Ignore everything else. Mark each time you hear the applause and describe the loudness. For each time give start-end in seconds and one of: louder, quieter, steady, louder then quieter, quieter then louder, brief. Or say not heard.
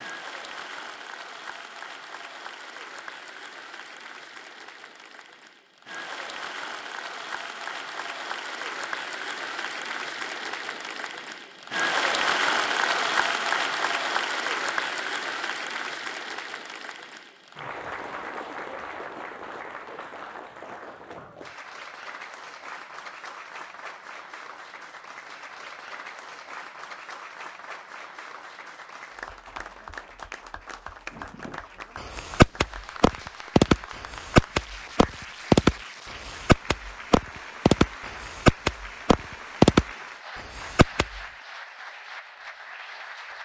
0.0-43.4 louder then quieter.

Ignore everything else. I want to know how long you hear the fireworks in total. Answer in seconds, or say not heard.
10 s.